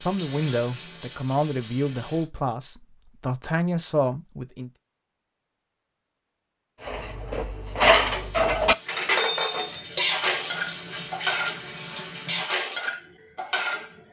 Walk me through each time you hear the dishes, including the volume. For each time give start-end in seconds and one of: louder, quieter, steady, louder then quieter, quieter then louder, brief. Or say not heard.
6.8-14.0 quieter.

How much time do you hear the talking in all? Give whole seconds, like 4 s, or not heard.
5 s.